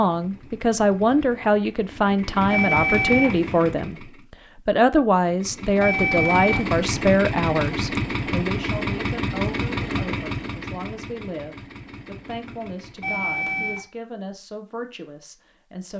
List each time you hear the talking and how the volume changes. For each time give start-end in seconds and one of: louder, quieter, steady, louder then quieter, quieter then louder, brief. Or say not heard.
0.0-15.9 quieter.